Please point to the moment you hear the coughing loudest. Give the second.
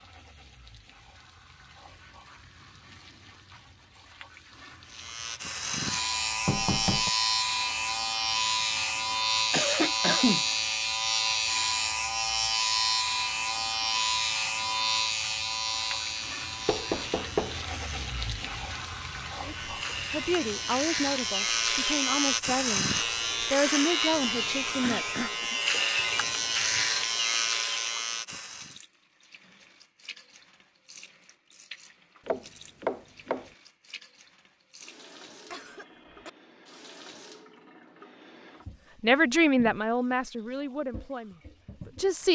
10 s.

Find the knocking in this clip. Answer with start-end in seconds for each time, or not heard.
6.5-7.1, 16.6-17.6, 32.2-33.5.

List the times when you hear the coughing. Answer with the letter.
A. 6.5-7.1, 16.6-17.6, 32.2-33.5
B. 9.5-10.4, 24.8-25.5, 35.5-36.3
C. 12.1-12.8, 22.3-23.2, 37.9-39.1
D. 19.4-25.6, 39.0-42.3
B.